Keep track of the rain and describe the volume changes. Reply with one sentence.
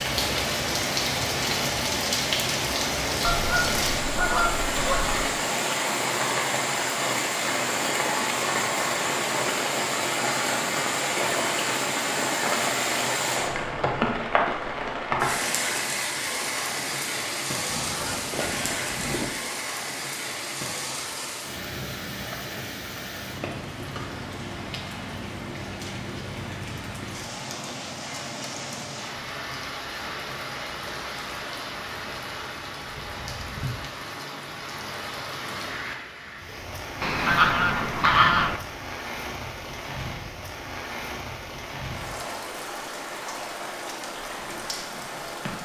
The volume of the rain goes down.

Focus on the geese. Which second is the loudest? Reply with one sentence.
The volume of the geese peaks at 38 seconds.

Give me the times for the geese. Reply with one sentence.
The geese can be heard from 3.2 to 5.2 s, from 17.6 to 19.3 s and from 37.0 to 38.6 s.